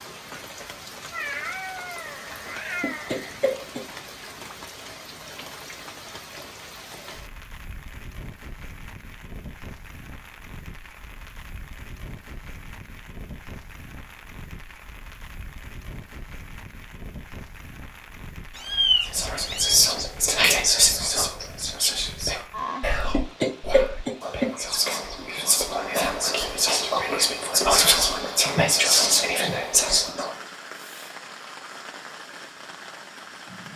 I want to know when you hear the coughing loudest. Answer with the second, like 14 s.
24 s.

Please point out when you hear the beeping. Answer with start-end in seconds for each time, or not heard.
not heard.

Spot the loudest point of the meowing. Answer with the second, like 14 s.
19 s.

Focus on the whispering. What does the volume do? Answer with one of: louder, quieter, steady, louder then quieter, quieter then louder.
quieter then louder.